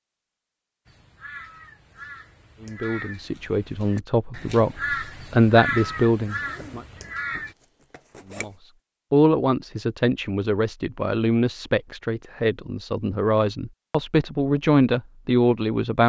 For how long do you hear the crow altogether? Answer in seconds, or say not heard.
7 s.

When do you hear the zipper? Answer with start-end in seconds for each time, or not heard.
6.4-8.6.